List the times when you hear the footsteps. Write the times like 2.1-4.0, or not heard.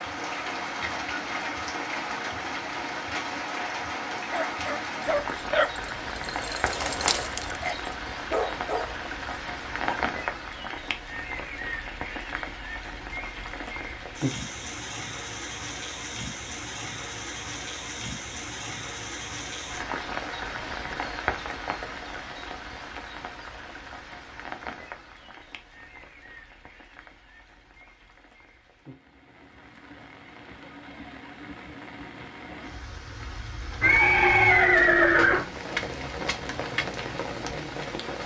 not heard.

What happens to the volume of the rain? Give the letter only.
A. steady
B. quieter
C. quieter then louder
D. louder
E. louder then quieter
C.